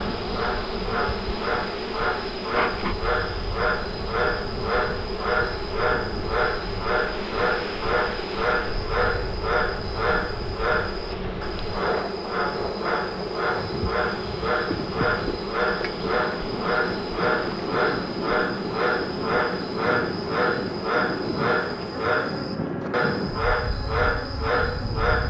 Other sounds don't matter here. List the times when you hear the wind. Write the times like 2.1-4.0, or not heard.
0.0-25.2.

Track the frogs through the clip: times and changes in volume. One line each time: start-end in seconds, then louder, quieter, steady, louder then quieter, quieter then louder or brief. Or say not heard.
0.0-25.2 steady.